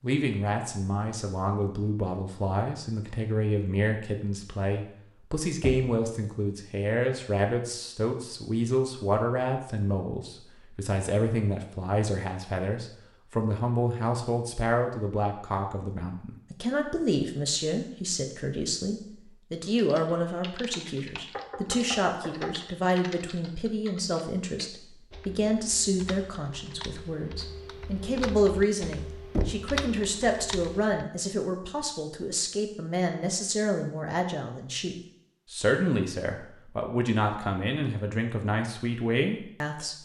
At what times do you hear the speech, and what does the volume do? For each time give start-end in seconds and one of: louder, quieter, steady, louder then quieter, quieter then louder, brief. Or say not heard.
0.0-40.0 steady.